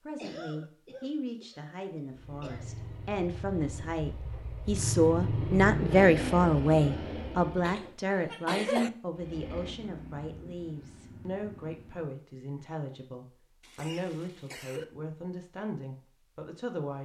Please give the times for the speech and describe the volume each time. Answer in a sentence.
The speech can be heard from 0.1 to 17.0 s, getting louder then quieter.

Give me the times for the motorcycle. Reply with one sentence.
The motorcycle can be heard from 2.0 to 8.0 s and from 9.2 to 12.1 s.